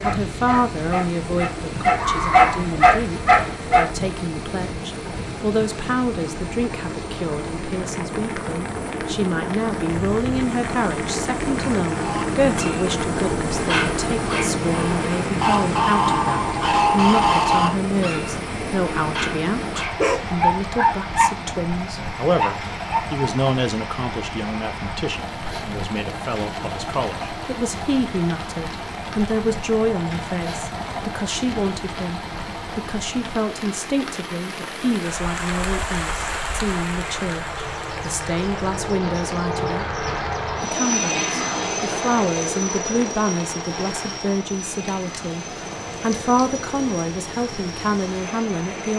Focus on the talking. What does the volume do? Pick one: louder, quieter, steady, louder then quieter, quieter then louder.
steady.